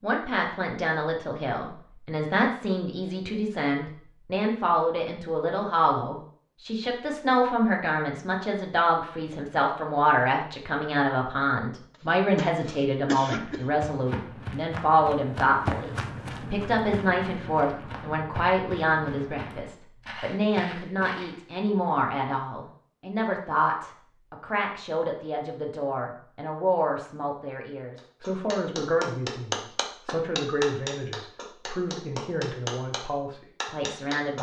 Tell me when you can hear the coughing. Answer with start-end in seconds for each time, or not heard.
12.3-13.7.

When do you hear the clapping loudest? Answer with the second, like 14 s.
29 s.